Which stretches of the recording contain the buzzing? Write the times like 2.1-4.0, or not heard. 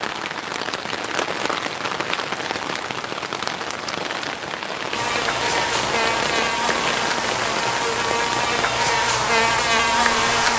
4.9-10.5.